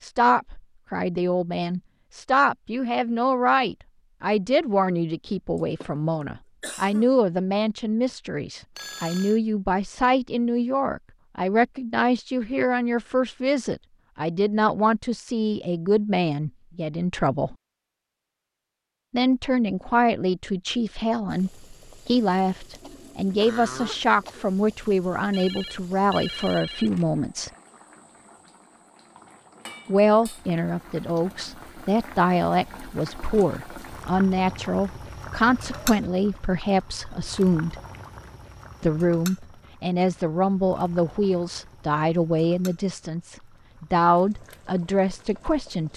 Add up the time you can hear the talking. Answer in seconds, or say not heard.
41 s.